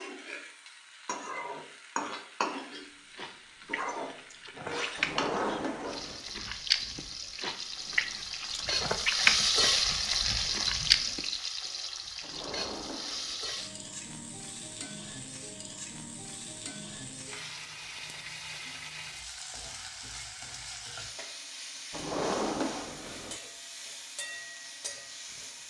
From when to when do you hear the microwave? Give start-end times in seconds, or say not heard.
not heard.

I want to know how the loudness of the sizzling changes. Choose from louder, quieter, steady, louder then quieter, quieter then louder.
louder then quieter.